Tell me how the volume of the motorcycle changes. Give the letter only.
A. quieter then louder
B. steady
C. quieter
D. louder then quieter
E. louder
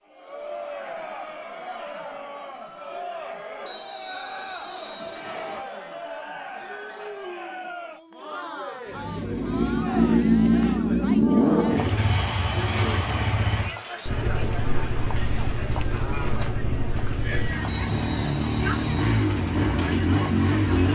A.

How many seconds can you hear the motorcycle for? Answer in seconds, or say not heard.
12 s.